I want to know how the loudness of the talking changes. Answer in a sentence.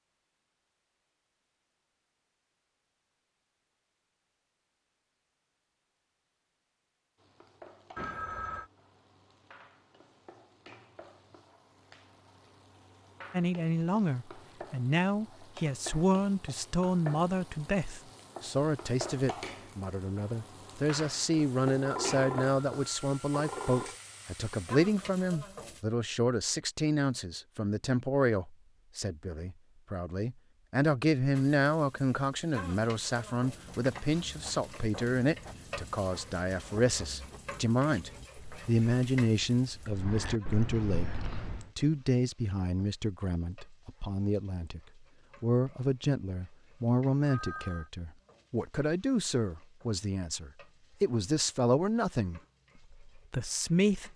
The volume of the talking stays about the same.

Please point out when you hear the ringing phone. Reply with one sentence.
The ringing phone can be heard from 8.0 to 8.7 s, from 21.8 to 23.9 s and from 47.2 to 47.9 s.